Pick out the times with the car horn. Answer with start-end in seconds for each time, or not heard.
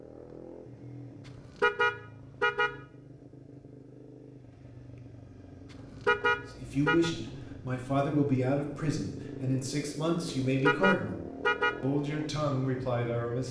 1.6-2.8, 6.0-7.1, 10.6-11.8.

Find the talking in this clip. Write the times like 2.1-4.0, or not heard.
6.6-11.2, 11.8-13.4.